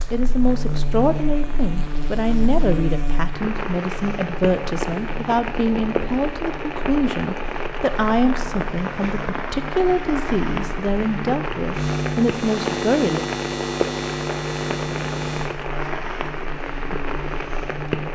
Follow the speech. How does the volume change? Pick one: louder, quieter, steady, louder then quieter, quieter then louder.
steady.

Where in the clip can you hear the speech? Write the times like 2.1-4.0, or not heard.
0.1-13.2.